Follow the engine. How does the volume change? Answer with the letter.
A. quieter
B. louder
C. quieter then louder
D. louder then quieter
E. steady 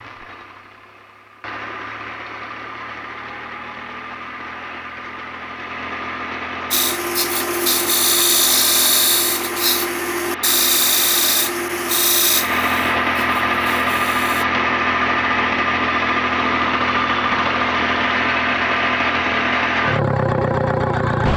B.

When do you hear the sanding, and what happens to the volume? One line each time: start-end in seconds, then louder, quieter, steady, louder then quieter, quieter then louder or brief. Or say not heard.
6.7-14.4 quieter.